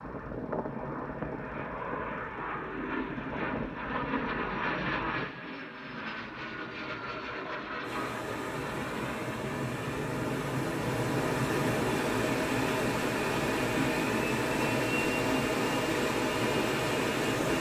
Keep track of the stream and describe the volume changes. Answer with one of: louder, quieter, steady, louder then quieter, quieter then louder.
louder.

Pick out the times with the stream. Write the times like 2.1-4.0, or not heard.
7.8-17.5.